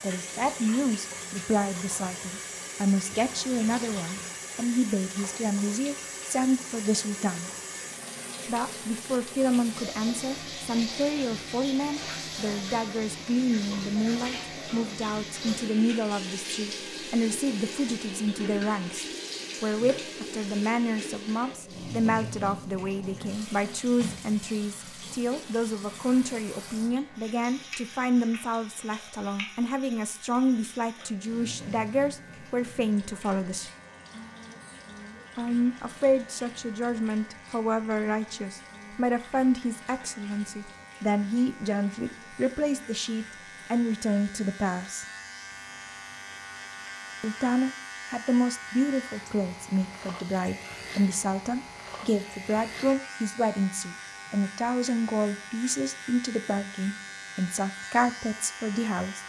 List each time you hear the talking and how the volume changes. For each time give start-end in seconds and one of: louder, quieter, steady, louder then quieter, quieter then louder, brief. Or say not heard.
0.0-7.5 steady
8.4-33.7 steady
35.4-45.0 steady
47.2-59.2 steady.